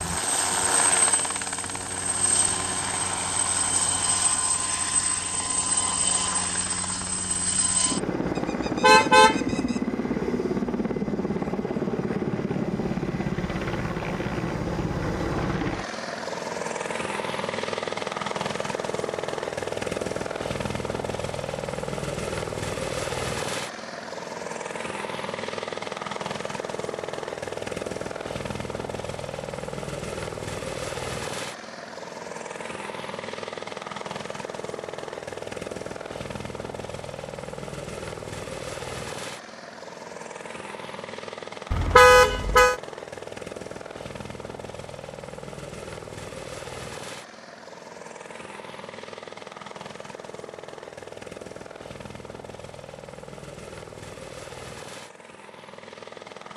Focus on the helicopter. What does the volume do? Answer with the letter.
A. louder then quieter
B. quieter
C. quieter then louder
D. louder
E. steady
B.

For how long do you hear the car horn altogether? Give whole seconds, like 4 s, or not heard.
2 s.